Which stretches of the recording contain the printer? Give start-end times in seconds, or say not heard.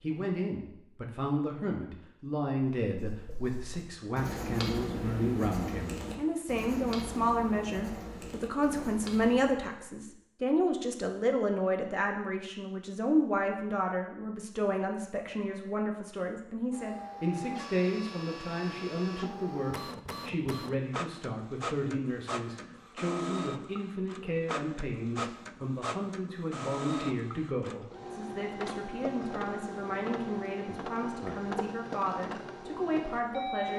16.7-33.7.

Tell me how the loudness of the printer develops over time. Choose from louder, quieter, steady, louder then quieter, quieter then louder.
steady.